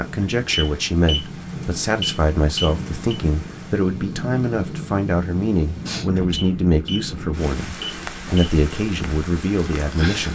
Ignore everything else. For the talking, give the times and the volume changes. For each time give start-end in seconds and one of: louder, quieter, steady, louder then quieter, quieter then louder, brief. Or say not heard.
0.0-10.2 steady.